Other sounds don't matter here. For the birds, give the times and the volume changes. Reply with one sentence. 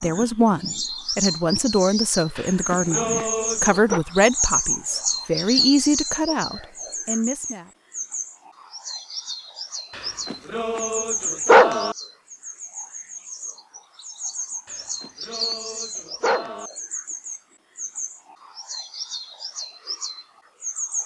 You can hear the birds from 0.0 to 21.0 s, getting quieter.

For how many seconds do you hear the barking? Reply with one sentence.
You can hear the barking for 6 seconds altogether.